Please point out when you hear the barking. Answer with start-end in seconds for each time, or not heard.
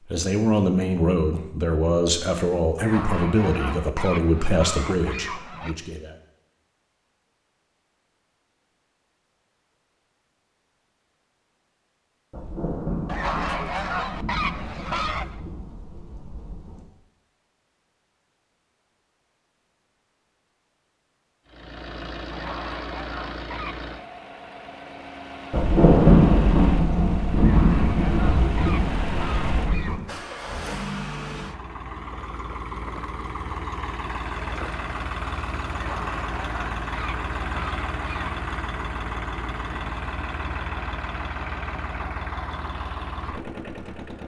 not heard.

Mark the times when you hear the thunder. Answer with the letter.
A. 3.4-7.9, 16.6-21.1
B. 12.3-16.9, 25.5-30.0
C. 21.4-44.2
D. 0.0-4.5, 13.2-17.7
B.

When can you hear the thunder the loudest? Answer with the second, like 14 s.
26 s.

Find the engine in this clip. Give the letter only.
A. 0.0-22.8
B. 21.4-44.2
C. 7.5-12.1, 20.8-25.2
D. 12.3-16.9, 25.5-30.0
B.